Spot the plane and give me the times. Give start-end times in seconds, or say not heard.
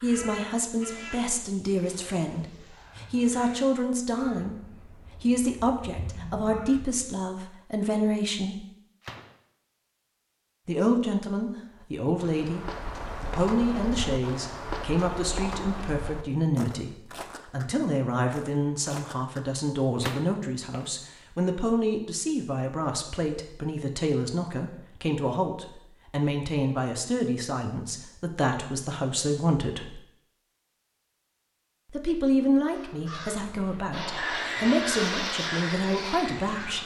33.9-36.8.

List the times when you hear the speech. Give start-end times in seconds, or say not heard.
0.0-8.6, 10.7-30.0, 31.9-36.8.